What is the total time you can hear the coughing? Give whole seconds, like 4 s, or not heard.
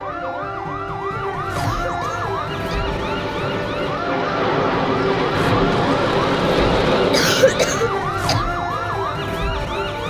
3 s.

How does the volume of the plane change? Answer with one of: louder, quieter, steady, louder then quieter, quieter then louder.
louder.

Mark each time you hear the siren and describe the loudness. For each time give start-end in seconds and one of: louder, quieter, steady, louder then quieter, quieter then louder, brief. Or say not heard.
0.0-10.0 steady.